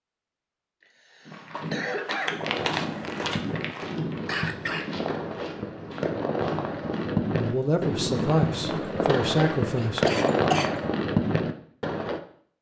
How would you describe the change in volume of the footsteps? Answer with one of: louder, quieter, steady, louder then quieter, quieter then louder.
quieter.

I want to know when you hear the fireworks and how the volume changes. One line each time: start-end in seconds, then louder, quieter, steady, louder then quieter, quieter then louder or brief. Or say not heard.
2.4-12.2 louder.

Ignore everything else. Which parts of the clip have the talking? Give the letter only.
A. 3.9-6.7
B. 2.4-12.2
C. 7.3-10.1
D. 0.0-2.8
C.